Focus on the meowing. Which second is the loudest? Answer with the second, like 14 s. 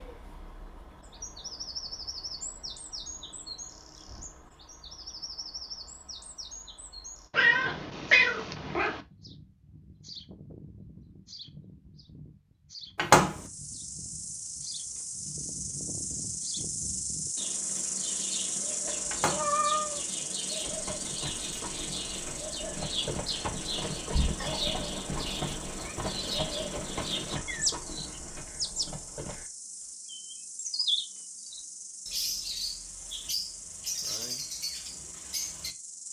8 s.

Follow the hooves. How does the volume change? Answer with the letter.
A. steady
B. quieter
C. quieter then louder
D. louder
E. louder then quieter
E.